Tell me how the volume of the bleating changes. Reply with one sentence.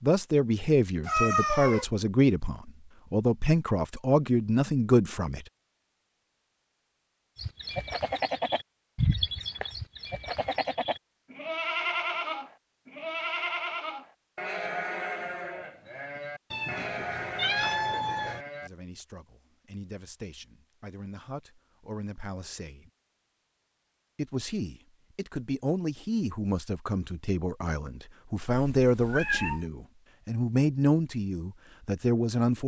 The loudness of the bleating goes down.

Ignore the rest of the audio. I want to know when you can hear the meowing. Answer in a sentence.
The meowing can be heard from 1.1 to 1.9 s, from 16.5 to 18.4 s and from 28.5 to 29.6 s.